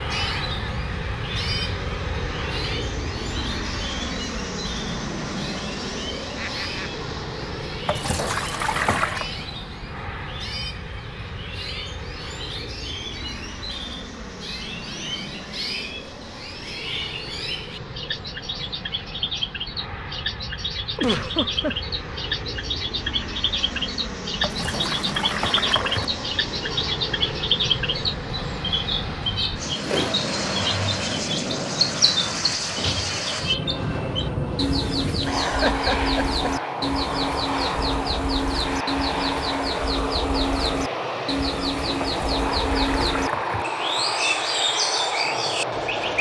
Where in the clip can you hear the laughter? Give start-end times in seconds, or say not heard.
6.3-7.0, 20.9-21.8, 35.0-36.5.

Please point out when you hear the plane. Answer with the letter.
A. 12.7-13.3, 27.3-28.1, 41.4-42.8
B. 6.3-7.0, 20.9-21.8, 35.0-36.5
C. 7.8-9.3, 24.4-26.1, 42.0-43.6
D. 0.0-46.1
D.